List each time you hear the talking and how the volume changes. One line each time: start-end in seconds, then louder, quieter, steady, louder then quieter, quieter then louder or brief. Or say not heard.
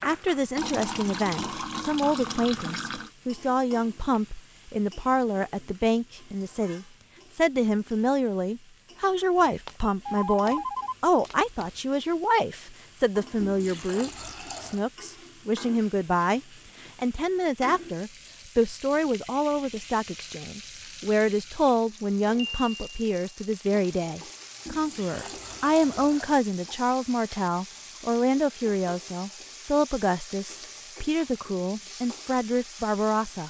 0.0-33.4 steady.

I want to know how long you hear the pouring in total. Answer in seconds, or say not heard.
6 s.